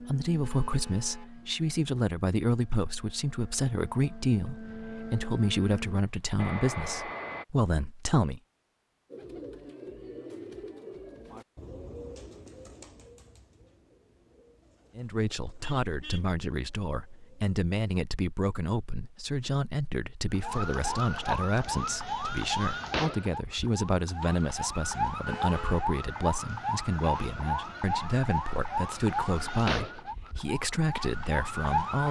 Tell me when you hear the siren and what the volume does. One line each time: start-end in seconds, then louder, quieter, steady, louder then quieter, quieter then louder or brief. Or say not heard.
20.3-32.0 steady.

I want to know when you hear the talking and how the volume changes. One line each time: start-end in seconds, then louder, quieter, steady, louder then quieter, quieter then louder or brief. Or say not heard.
0.0-8.4 steady
14.9-32.0 steady.